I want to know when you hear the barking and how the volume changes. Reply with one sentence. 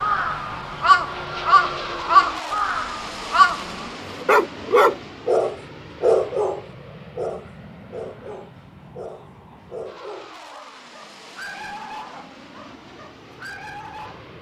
The barking can be heard from 4.0 to 14.2 s, getting quieter.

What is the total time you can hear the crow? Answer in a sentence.
You can hear the crow for 4 seconds altogether.